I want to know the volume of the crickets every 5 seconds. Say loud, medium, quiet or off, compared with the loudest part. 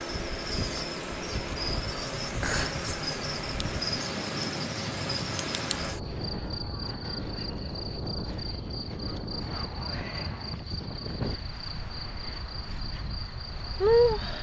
loud, medium, loud.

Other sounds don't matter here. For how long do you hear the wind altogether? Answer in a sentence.
The wind can be heard for 14 seconds in total.